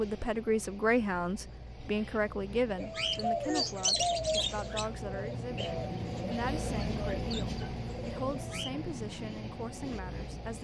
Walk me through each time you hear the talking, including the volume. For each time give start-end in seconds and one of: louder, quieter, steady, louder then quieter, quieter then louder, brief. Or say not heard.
0.0-10.6 quieter.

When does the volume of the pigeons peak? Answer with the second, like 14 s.
4 s.